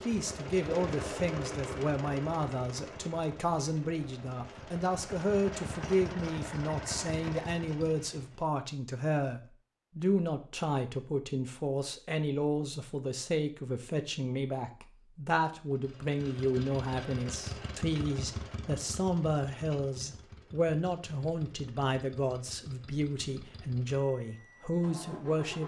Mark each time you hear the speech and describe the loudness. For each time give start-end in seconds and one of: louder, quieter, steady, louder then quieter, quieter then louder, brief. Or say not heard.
0.0-25.6 steady.